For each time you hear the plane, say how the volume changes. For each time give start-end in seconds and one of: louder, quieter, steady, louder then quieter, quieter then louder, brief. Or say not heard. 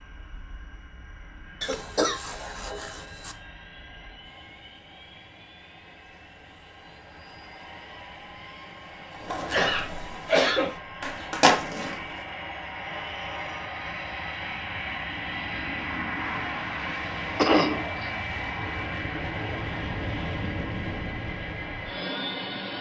0.0-22.7 louder.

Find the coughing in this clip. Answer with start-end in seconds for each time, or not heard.
1.6-3.4, 9.5-10.8, 17.4-18.1.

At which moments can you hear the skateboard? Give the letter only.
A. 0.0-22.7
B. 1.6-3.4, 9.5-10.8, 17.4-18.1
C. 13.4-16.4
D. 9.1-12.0
D.